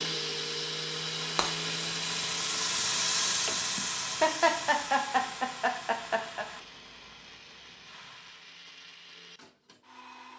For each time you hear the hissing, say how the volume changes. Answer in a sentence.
The hissing can be heard from 0.0 to 8.6 s, getting louder then quieter.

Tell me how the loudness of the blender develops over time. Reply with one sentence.
The loudness of the blender goes down.